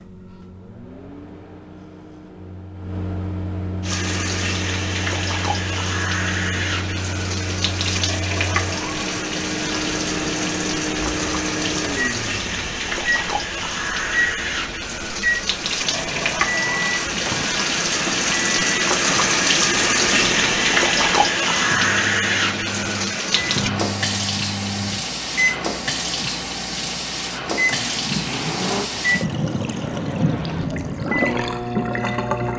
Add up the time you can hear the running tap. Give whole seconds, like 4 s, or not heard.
29 s.